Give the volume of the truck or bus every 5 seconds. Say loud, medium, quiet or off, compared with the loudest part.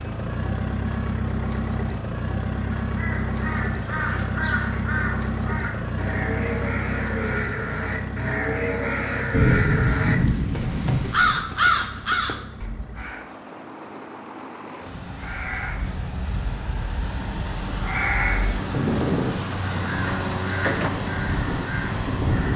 loud, loud, quiet, medium, loud.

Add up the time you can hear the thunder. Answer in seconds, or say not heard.
2 s.